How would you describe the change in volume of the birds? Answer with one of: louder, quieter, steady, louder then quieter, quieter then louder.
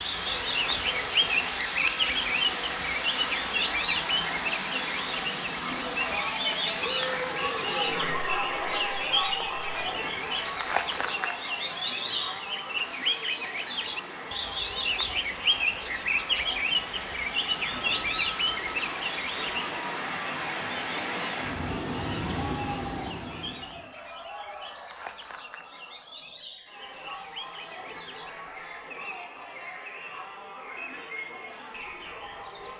quieter.